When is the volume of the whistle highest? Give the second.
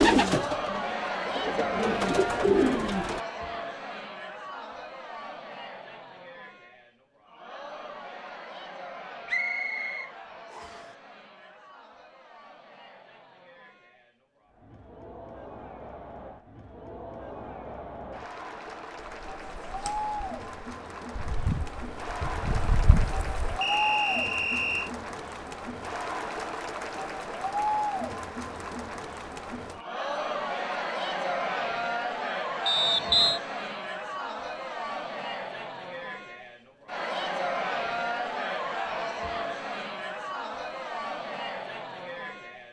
33 s.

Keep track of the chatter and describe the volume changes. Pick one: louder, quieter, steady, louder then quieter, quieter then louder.
quieter then louder.